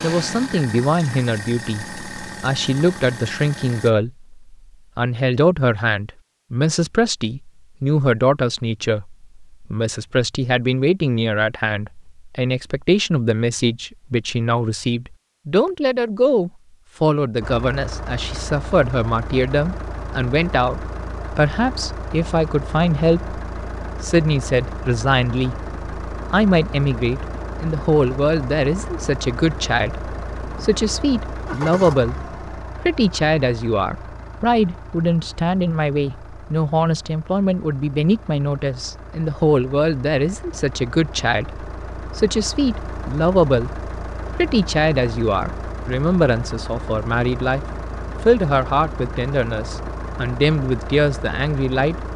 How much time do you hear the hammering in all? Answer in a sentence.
You can't hear the hammering here.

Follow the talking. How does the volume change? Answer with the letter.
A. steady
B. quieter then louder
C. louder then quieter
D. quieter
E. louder
A.